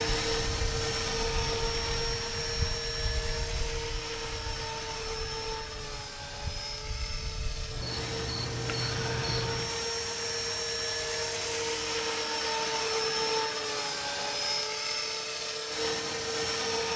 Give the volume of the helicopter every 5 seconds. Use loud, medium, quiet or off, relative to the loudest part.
loud, medium, loud, loud.